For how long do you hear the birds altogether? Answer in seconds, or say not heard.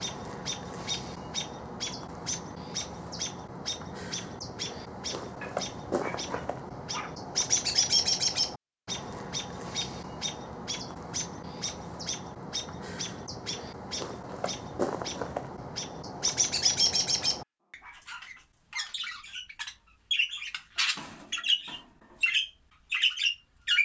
24 s.